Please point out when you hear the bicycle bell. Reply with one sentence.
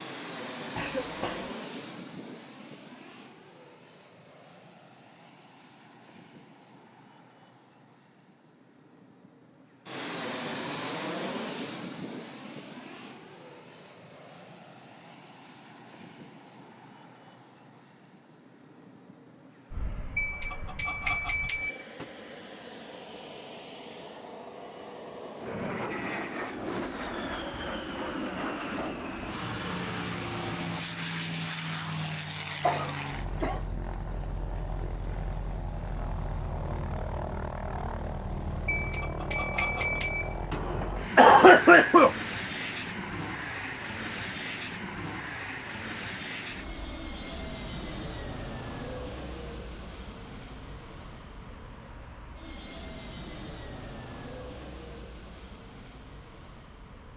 The bicycle bell can be heard from 20.1 to 22.1 s and from 38.6 to 40.6 s.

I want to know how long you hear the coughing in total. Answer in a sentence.
The coughing can be heard for 3 seconds in total.